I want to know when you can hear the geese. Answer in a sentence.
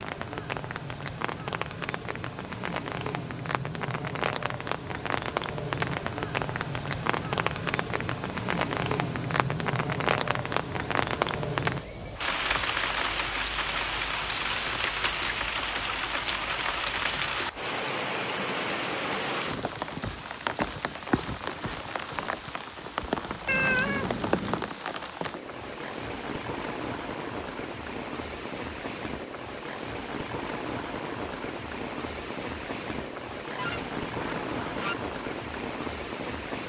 You can hear the geese from 33.5 to 35.0 s.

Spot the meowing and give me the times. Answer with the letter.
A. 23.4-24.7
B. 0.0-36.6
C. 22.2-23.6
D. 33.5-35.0
A.